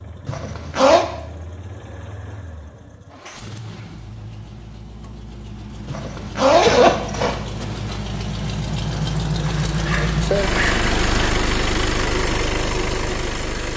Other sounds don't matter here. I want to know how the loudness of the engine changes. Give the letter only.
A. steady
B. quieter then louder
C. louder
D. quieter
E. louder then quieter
C.